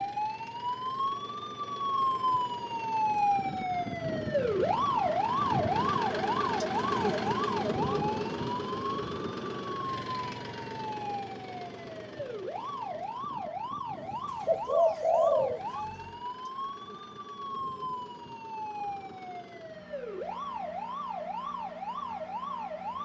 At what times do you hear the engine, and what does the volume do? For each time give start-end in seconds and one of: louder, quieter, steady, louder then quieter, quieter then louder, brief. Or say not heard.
0.0-23.0 louder then quieter.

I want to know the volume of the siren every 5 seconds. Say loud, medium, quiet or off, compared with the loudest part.
loud, loud, medium, medium, medium.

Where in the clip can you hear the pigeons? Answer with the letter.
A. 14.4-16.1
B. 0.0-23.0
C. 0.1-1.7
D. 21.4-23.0
A.